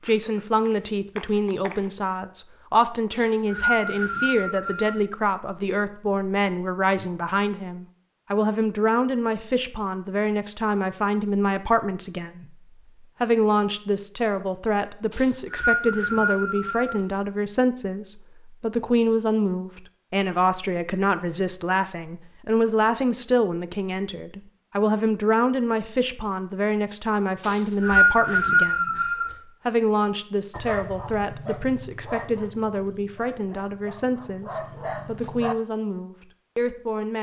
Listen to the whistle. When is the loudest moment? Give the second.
28 s.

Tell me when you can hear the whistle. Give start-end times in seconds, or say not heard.
3.1-5.0, 15.1-17.0, 27.4-29.3.